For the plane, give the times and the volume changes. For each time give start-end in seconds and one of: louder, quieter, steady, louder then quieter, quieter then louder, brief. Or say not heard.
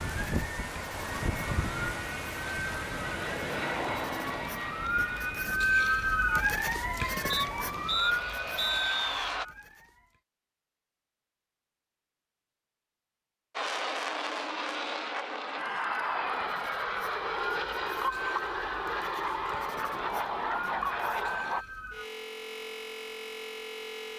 0.0-9.4 quieter then louder
13.6-21.6 steady.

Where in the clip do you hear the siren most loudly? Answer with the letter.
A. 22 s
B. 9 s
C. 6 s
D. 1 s
C.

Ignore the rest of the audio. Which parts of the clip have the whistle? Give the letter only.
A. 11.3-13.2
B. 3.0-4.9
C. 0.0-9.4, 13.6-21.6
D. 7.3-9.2
D.